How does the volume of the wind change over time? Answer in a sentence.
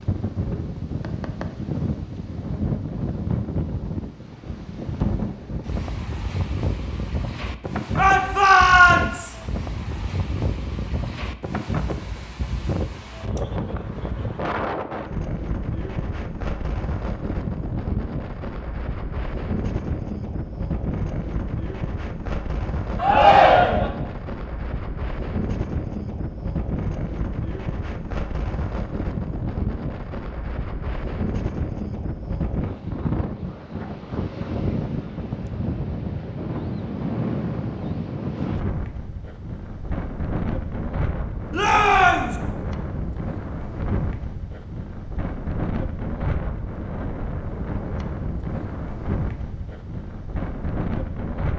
The loudness of the wind stays about the same.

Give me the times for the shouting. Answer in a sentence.
You can hear the shouting from 8.0 to 9.3 s, from 22.9 to 23.9 s and from 41.5 to 42.4 s.